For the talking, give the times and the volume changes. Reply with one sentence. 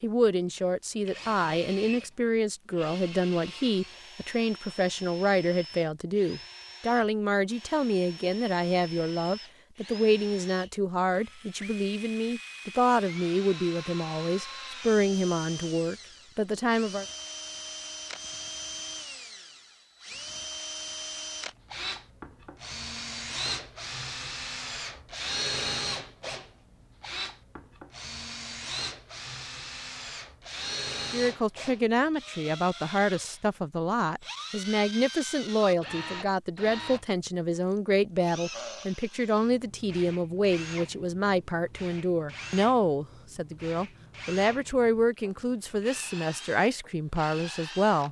You can hear the talking from 0.0 to 17.1 s, at a steady volume; and from 31.1 to 48.0 s, at a steady volume.